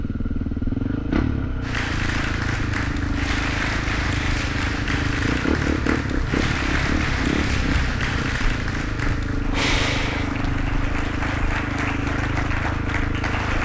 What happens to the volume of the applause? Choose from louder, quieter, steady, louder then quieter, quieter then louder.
steady.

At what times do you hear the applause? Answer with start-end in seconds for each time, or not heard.
1.6-13.6.